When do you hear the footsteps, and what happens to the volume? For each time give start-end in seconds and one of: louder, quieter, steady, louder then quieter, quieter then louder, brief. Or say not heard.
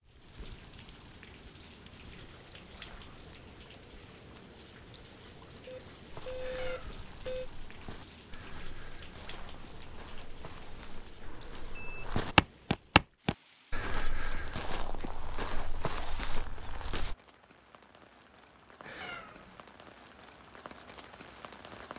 6.1-17.1 louder then quieter.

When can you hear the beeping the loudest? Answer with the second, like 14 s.
7 s.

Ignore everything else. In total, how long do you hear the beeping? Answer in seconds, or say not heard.
3 s.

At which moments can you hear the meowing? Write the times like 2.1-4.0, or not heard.
6.4-7.0, 18.8-19.6.